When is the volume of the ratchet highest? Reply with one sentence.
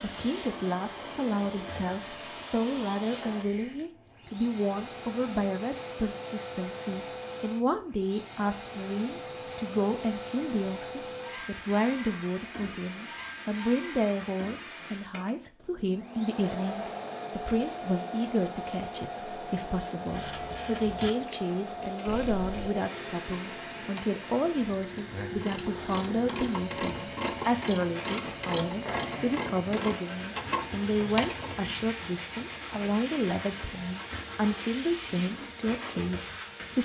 The volume of the ratchet peaks at 31 seconds.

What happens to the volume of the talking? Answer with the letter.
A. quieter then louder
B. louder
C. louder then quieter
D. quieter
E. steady
E.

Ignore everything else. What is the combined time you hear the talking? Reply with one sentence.
The talking can be heard for 37 seconds in total.